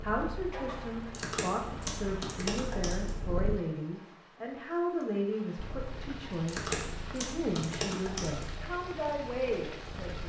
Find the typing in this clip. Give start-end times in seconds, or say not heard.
1.1-3.1, 6.5-8.4.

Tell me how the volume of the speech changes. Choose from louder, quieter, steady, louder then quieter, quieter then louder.
steady.